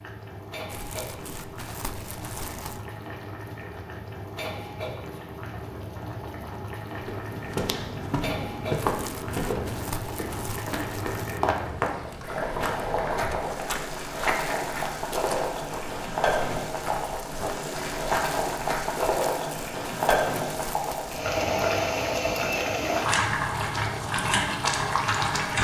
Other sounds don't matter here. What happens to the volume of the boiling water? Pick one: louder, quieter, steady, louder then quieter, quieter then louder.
louder.